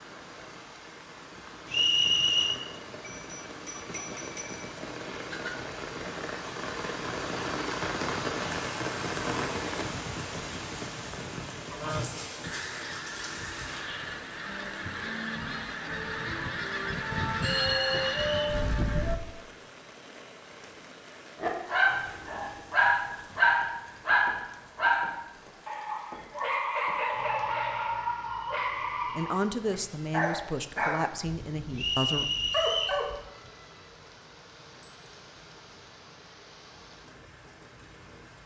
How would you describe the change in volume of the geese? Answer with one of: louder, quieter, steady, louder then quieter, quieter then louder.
louder.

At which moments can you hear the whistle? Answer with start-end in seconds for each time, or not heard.
1.7-2.6, 17.6-18.4, 31.8-33.0.